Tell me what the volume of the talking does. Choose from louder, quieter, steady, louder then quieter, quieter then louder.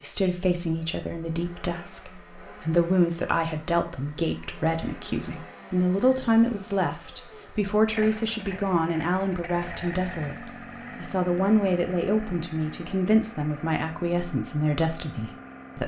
steady.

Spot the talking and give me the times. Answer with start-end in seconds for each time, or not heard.
0.0-15.8.